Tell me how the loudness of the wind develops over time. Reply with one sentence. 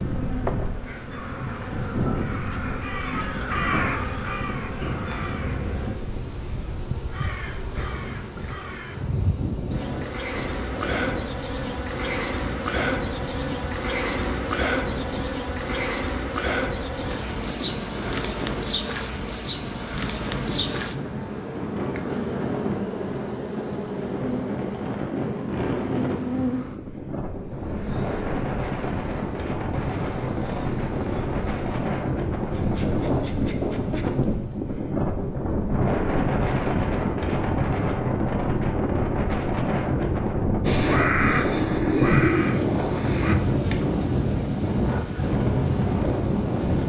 The volume of the wind goes up.